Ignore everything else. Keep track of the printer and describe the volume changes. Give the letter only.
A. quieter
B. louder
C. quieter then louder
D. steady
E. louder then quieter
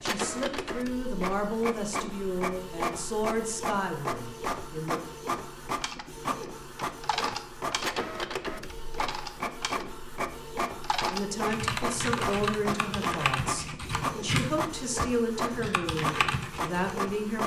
D.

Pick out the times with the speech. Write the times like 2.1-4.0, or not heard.
0.0-5.0, 11.1-17.4.